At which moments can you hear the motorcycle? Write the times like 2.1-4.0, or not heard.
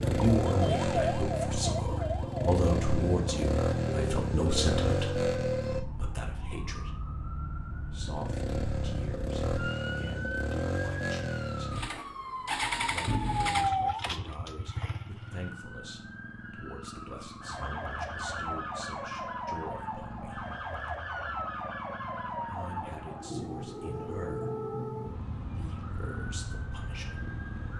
0.0-5.8, 8.0-27.7.